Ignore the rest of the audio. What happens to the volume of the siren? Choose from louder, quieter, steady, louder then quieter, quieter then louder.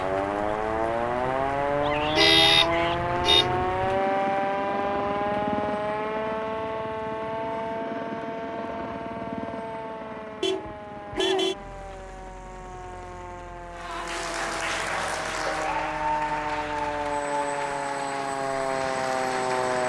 quieter then louder.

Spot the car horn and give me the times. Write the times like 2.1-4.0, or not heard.
2.1-3.5, 10.4-11.6, 14.8-15.9.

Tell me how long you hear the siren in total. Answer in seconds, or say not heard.
20 s.